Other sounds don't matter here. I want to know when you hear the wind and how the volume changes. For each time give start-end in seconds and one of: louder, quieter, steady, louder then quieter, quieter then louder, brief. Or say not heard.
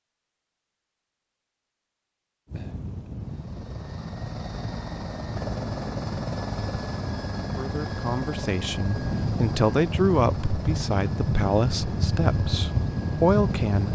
2.5-13.9 louder.